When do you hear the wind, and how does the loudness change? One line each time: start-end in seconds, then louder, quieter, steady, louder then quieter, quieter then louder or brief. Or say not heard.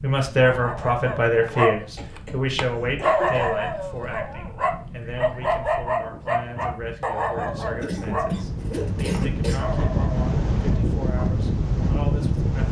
0.1-12.6 louder.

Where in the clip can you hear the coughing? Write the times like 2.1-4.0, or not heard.
1.9-3.5, 7.8-9.7.